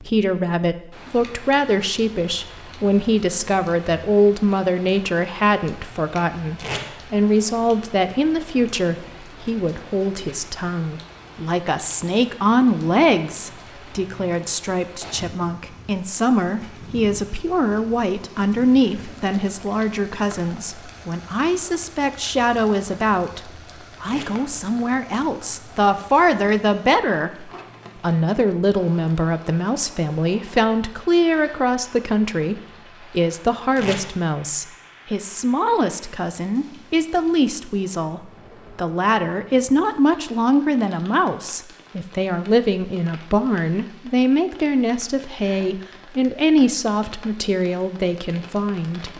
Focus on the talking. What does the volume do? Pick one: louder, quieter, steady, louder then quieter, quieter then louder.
steady.